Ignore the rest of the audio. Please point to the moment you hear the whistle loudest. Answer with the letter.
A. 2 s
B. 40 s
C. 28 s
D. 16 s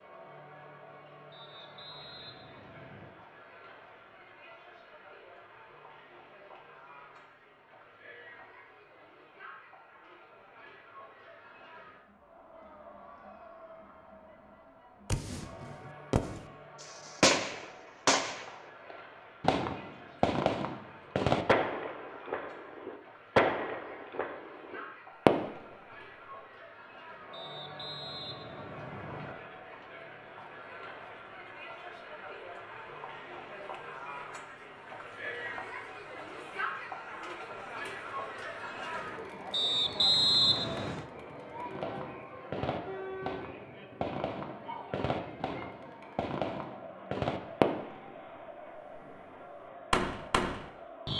B.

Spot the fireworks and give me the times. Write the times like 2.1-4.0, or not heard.
15.1-25.8, 41.5-48.1, 49.9-51.1.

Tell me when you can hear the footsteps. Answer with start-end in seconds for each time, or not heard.
not heard.